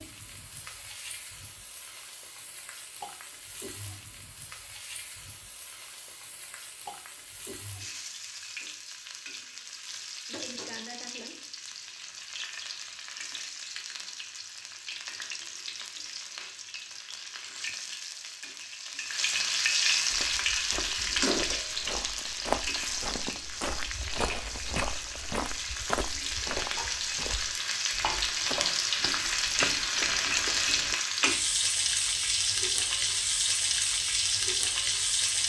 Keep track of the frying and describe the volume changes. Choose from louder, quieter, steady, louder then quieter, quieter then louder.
louder.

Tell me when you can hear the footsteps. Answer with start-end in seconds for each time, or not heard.
20.1-30.9.